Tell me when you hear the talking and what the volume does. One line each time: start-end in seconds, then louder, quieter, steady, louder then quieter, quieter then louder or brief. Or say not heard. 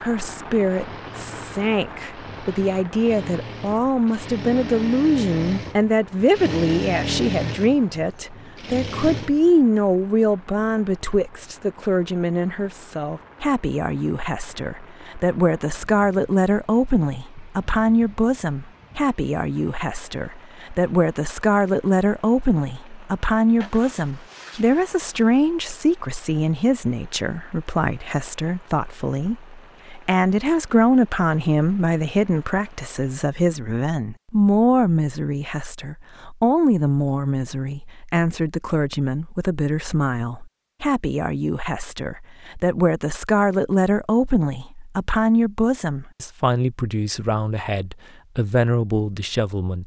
0.0-49.8 steady.